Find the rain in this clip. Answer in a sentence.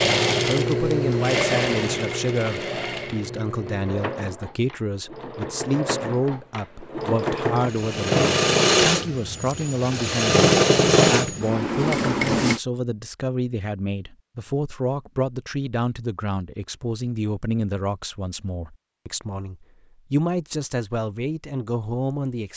You can't hear the rain here.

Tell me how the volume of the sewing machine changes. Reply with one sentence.
The volume of the sewing machine goes down, then up.